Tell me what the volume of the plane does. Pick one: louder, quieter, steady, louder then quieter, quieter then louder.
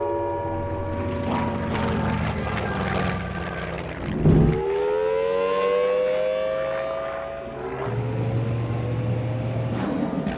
quieter then louder.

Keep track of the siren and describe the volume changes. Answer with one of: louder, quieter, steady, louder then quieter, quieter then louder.
louder then quieter.